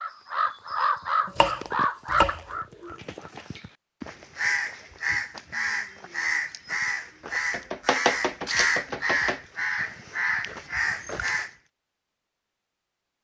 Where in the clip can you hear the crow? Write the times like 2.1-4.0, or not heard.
0.0-11.5.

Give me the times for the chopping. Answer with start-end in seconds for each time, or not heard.
1.2-2.9, 7.5-9.4.